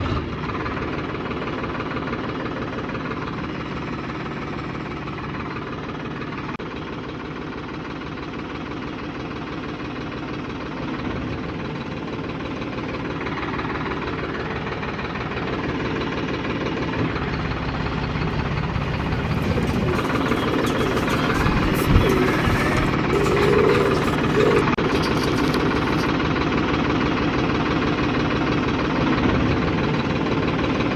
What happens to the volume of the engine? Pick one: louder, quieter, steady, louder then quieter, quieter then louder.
louder.